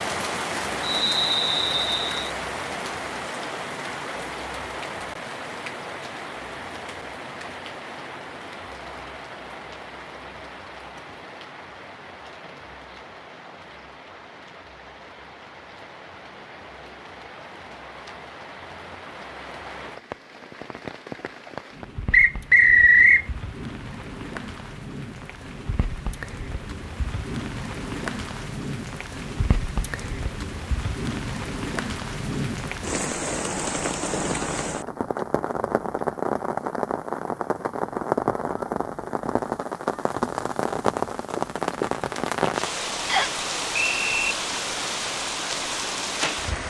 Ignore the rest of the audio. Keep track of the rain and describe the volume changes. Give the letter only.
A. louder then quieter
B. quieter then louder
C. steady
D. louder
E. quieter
B.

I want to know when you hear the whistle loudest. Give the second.
23 s.